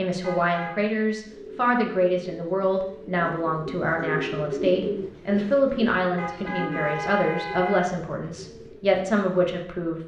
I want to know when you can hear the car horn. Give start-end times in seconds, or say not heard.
0.2-0.9, 6.2-7.8.